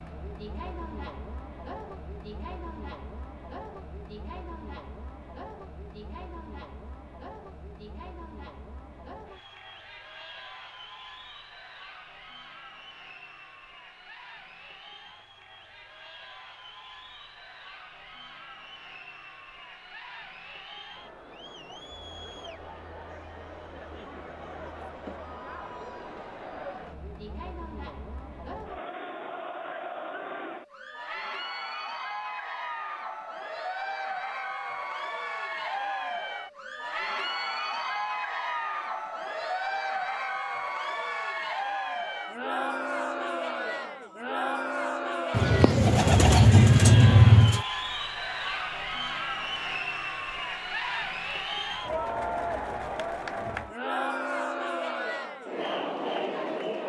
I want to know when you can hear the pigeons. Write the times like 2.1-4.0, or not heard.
45.3-47.6.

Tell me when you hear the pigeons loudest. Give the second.
47 s.